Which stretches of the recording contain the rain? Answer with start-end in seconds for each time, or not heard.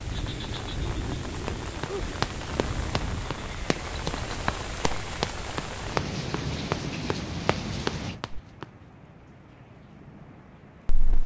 0.0-11.2.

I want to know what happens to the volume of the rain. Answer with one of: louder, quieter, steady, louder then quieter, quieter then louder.
quieter.